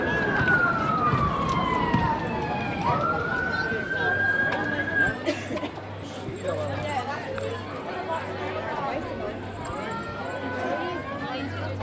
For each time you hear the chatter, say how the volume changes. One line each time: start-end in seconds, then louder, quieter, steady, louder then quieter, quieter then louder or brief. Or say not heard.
0.0-11.7 steady.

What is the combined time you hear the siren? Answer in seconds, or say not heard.
5 s.